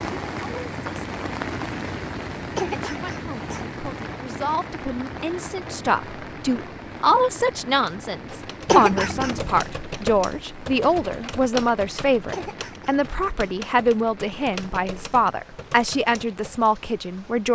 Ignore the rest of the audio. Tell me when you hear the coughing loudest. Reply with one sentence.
The loudest moment of the coughing is at 9 seconds.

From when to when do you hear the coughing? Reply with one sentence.
You can hear the coughing from 2.5 to 3.8 s, from 8.7 to 9.6 s and from 12.3 to 13.3 s.